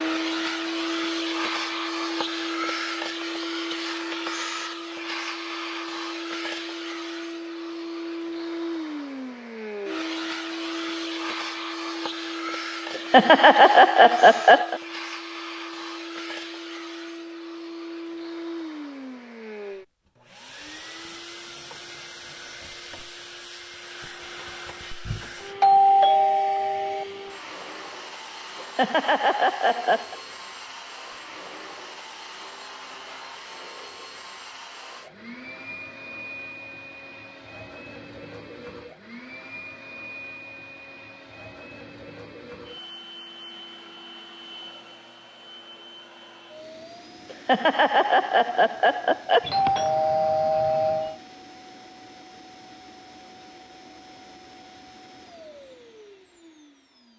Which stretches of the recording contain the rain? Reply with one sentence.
The rain can't be heard in this clip.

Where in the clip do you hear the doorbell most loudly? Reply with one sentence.
The loudest moment of the doorbell is at 26 seconds.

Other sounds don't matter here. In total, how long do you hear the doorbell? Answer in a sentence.
You can hear the doorbell for 4 seconds altogether.